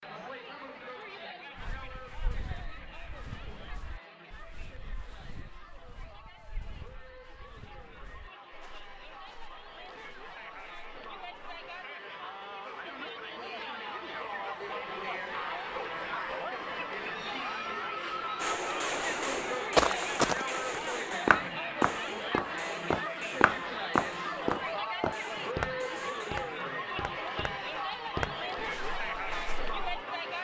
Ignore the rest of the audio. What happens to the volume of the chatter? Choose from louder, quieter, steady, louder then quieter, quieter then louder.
louder.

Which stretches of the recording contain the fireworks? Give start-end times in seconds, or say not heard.
18.4-26.4.